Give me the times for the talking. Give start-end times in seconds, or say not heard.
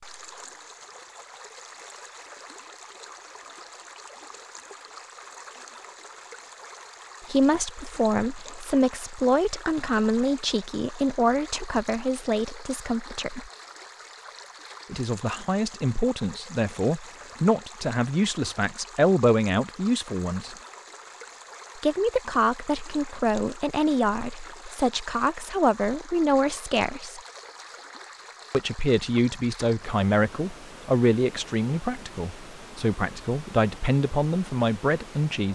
7.3-13.5, 14.9-20.6, 21.8-27.2, 28.5-35.4.